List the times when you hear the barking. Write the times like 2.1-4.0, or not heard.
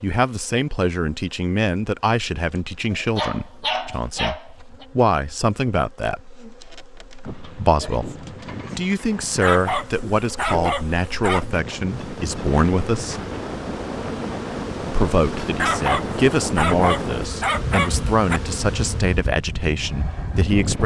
2.9-4.8, 9.4-11.6, 15.6-18.4.